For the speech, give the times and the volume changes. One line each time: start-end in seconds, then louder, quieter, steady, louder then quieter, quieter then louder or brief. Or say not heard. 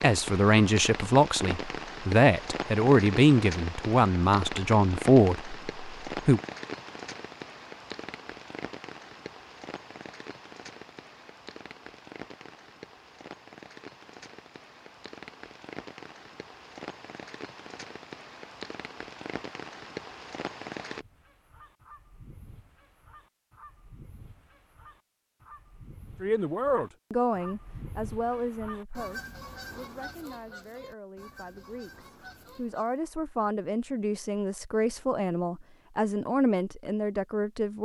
0.0-6.4 steady
26.2-37.7 quieter then louder.